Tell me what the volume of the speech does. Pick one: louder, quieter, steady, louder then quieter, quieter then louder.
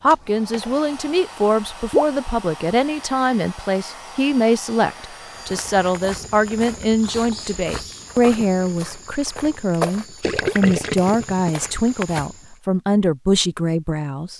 steady.